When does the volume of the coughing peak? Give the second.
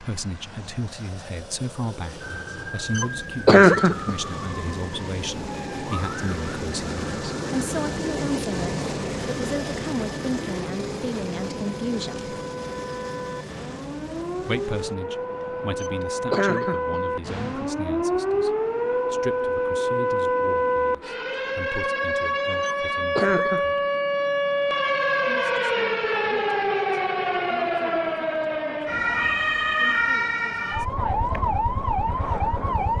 4 s.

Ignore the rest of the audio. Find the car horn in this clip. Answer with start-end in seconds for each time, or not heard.
not heard.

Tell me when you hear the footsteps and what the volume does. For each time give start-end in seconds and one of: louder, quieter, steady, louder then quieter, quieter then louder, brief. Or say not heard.
not heard.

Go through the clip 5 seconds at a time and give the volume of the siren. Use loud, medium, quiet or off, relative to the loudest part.
quiet, quiet, medium, loud, loud, loud, loud.